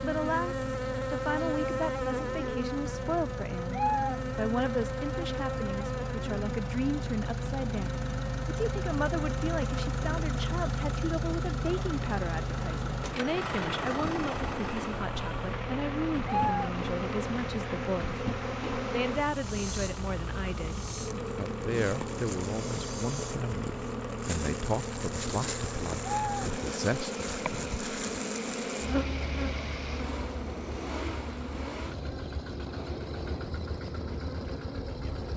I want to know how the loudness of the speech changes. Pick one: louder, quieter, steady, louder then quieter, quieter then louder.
steady.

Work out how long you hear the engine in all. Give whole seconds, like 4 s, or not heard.
35 s.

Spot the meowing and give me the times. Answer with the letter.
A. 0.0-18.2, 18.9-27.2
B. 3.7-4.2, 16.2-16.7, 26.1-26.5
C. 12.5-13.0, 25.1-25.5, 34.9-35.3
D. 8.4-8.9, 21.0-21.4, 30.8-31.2
B.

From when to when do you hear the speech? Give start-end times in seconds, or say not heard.
0.0-18.2, 18.9-27.2.